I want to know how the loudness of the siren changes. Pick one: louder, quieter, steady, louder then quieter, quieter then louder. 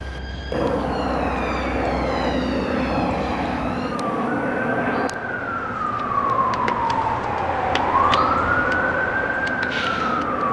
louder.